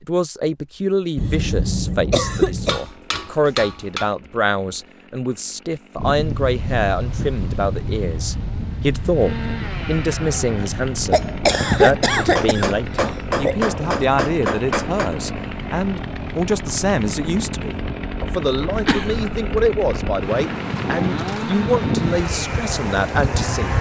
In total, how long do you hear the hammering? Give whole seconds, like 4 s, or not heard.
4 s.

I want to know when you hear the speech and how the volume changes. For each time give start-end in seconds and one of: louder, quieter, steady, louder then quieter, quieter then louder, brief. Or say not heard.
0.0-23.7 steady.